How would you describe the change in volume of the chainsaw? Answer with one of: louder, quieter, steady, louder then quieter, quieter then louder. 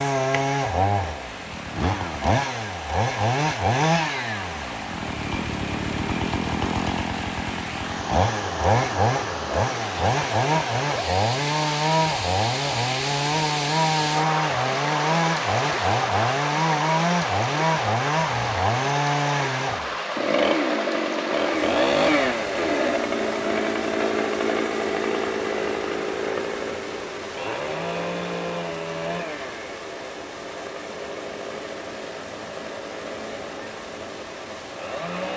quieter.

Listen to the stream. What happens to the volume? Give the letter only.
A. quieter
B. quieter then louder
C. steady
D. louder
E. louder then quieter
E.